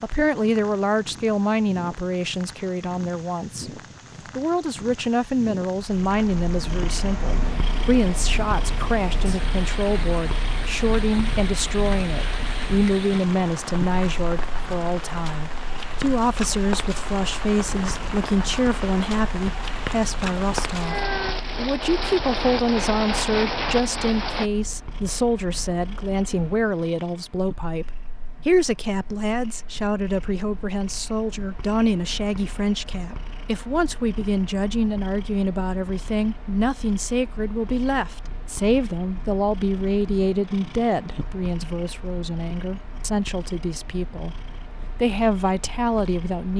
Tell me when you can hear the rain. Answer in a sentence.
The rain can be heard from 0.0 to 24.5 s.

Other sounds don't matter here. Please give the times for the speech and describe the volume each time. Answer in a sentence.
The speech can be heard from 0.0 to 20.9 s, at a steady volume; and from 21.6 to 46.5 s, at a steady volume.